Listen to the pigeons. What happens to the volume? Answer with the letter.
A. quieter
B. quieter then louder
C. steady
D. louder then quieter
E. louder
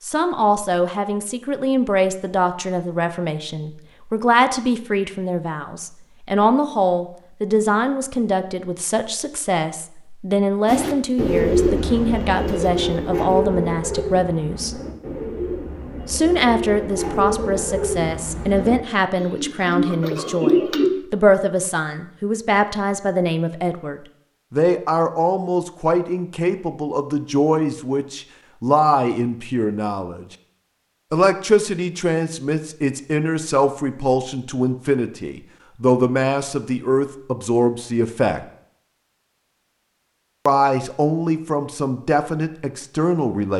B.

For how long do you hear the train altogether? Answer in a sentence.
The train can't be heard in this clip.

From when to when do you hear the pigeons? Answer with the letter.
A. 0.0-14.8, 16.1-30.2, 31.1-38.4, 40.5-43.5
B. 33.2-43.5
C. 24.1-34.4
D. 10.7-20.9
D.